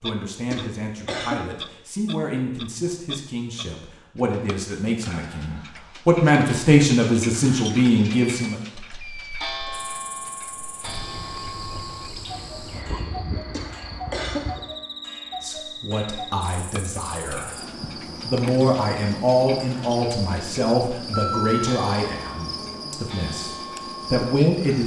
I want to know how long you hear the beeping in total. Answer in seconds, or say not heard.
2 s.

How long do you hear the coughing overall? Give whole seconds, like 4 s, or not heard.
2 s.